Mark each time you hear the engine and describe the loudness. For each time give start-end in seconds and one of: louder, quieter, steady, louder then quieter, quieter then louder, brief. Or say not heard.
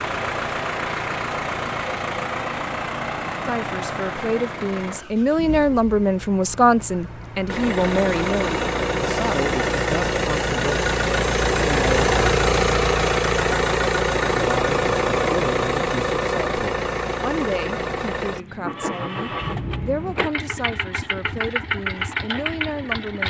0.0-23.2 louder then quieter.